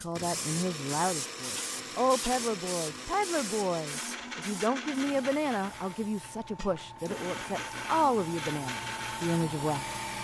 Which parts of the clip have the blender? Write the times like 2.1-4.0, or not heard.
0.0-10.1.